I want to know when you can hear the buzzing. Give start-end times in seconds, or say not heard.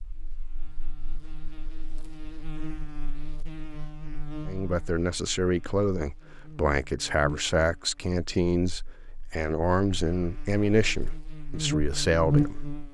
0.0-12.8.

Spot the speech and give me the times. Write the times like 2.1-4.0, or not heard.
4.5-12.8.